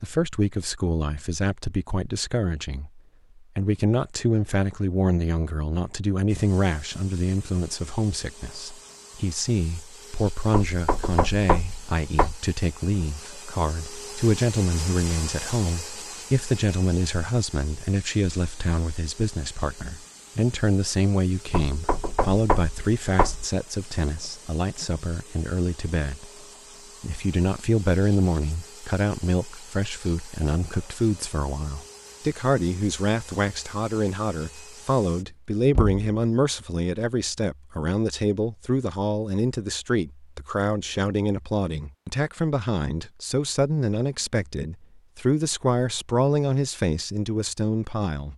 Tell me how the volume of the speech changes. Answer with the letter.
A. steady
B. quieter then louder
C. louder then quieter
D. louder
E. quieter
A.